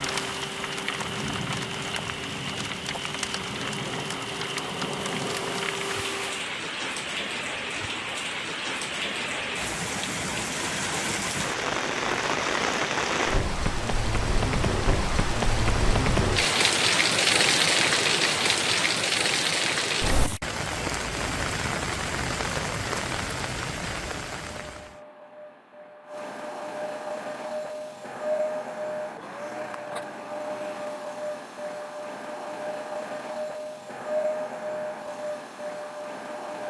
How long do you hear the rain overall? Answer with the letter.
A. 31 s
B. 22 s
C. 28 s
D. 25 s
D.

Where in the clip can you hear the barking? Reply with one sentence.
The barking can't be heard in this clip.